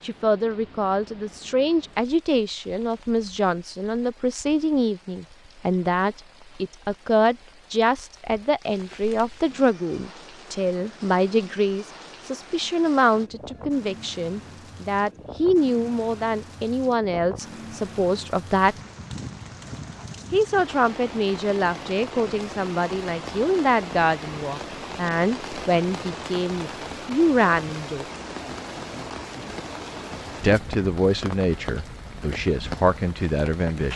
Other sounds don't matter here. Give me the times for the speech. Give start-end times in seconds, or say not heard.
0.0-18.8, 20.3-28.1, 30.4-33.9.